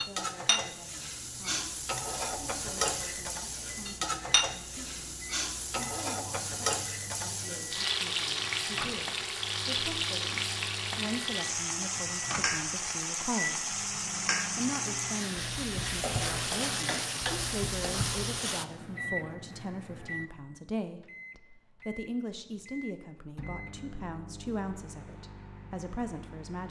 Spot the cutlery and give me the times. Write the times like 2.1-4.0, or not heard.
not heard.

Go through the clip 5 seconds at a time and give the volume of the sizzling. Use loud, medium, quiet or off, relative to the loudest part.
loud, loud, loud, loud, off, off.